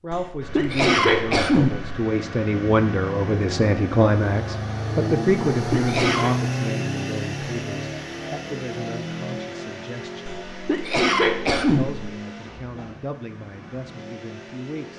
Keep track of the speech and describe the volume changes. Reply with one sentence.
The loudness of the speech goes up, then down.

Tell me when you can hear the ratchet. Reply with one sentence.
The ratchet can't be heard in this clip.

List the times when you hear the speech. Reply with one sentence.
You can hear the speech from 0.0 to 10.3 s and from 11.7 to 14.9 s.